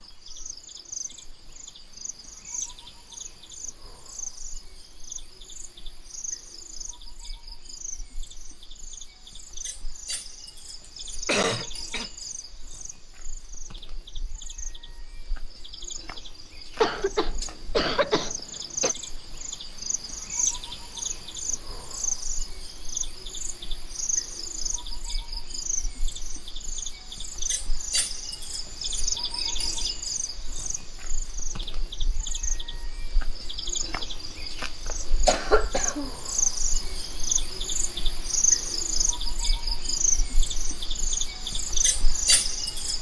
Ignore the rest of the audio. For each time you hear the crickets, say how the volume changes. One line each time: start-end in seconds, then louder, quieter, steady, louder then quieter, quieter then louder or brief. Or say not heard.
0.0-42.9 louder.